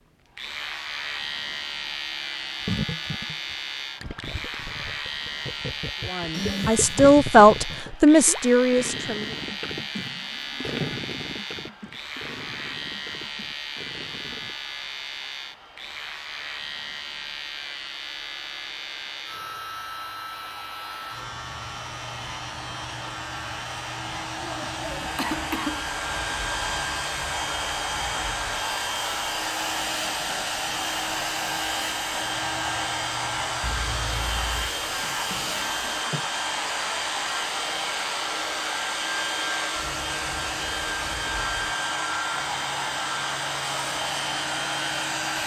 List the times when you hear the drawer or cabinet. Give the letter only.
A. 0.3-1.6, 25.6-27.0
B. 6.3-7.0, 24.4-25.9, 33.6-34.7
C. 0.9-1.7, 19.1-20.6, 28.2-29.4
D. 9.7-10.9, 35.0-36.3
D.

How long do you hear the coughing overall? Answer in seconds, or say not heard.
3 s.